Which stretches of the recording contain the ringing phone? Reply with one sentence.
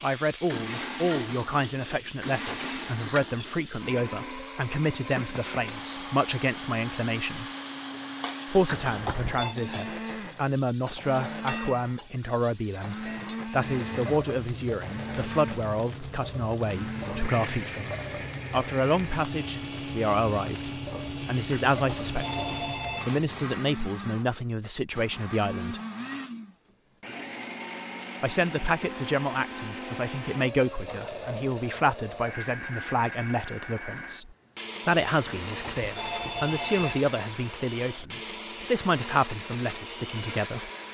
You can hear the ringing phone from 8.7 to 9.6 s, from 21.7 to 23.1 s and from 35.2 to 37.0 s.